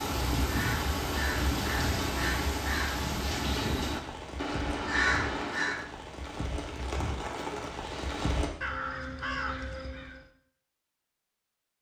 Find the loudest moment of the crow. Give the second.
5 s.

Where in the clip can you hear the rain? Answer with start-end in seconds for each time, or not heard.
0.0-8.5.